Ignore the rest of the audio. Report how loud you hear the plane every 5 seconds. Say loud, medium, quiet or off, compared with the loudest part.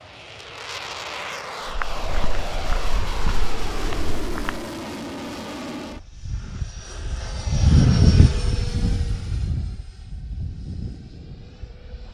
medium, loud, quiet.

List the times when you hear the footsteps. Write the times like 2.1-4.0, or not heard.
1.6-4.7.